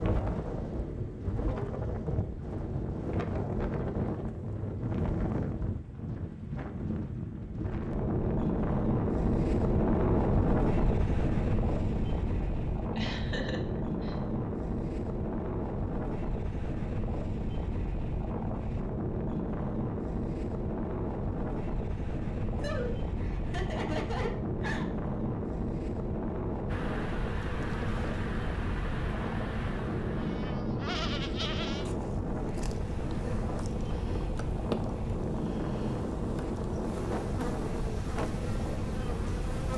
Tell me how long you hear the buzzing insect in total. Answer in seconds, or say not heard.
13 s.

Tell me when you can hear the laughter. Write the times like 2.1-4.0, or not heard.
12.4-14.2, 22.6-24.9.